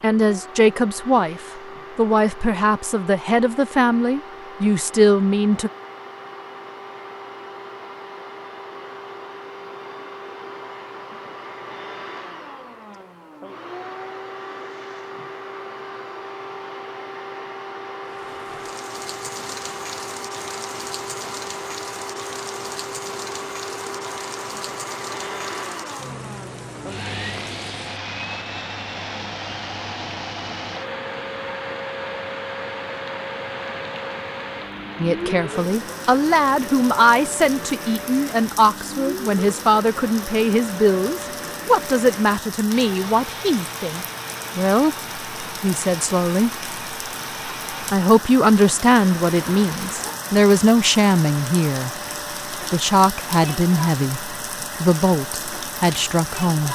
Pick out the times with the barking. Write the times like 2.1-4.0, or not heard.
not heard.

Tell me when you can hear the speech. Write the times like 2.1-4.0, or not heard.
0.0-5.7, 35.0-46.5, 47.9-51.9, 52.5-56.7.